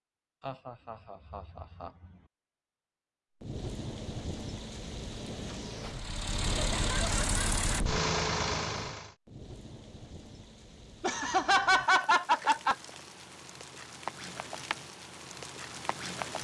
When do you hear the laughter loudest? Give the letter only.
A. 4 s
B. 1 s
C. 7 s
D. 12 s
D.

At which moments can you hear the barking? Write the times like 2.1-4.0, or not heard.
not heard.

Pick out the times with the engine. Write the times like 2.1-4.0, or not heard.
5.8-9.2.